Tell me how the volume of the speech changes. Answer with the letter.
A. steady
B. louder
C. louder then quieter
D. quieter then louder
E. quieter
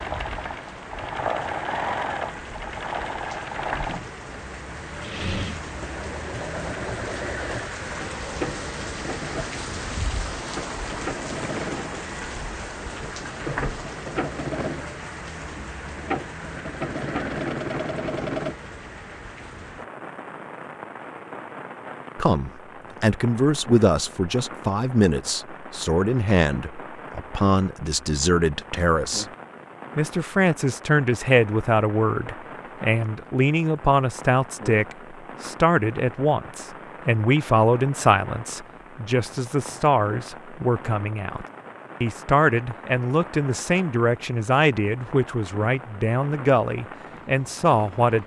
A.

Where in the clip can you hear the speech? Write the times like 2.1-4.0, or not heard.
22.1-29.2, 29.9-48.2.